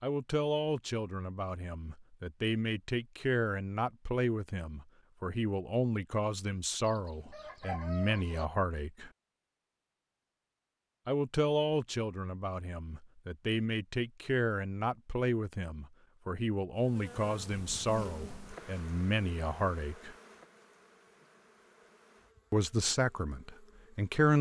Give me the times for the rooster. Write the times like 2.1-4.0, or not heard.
6.8-8.4.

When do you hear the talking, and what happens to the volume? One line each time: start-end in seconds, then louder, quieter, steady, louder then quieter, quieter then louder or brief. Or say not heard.
0.0-9.1 steady
11.1-20.1 steady
22.5-24.3 brief.